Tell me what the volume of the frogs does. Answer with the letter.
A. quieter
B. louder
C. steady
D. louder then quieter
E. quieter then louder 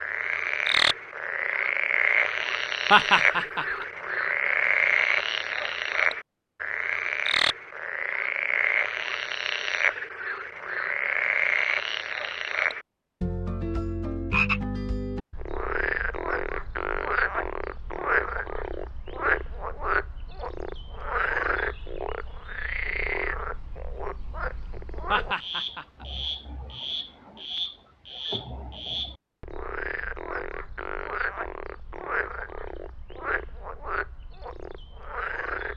A.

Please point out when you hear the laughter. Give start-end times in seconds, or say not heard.
2.9-3.9, 25.1-26.1.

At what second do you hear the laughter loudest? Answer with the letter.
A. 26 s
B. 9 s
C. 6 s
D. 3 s
D.